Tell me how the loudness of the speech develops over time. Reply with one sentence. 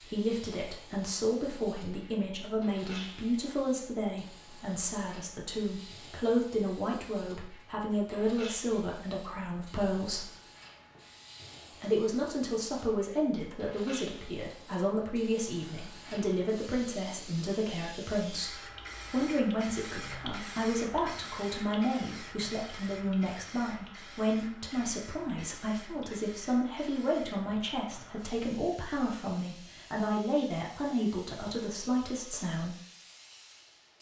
The loudness of the speech stays about the same.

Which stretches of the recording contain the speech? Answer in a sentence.
You can hear the speech from 0.0 to 10.3 s and from 11.7 to 32.8 s.